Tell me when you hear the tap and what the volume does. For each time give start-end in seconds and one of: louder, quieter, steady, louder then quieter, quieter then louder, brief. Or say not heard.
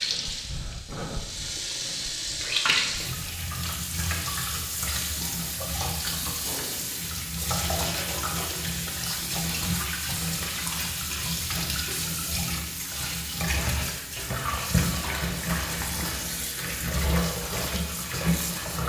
0.0-18.8 steady.